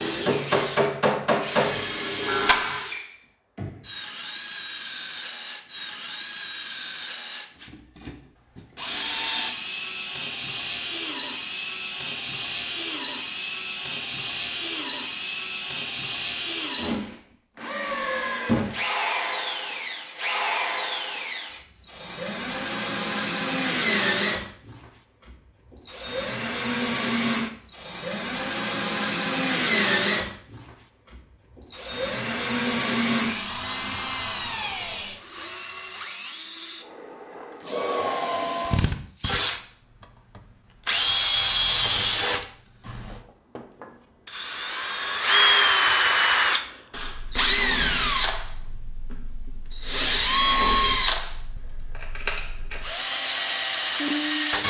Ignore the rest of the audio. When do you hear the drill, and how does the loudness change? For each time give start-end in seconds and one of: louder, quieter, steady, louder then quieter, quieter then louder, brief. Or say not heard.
0.0-54.6 louder.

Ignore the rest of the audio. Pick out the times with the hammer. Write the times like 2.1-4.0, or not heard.
0.0-2.9.